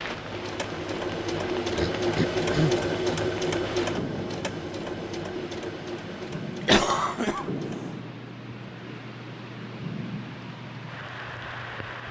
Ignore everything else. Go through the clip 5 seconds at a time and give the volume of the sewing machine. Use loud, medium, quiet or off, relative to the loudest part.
loud, medium, quiet.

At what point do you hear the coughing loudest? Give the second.
7 s.